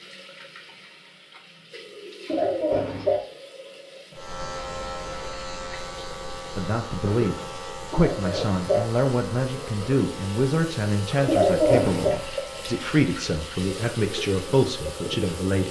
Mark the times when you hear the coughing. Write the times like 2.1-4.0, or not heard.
2.2-3.2, 7.9-8.8, 11.2-12.2.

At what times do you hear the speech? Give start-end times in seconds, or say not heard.
6.5-15.6.